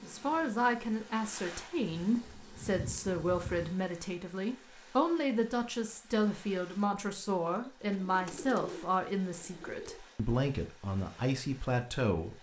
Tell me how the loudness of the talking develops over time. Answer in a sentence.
The loudness of the talking stays about the same.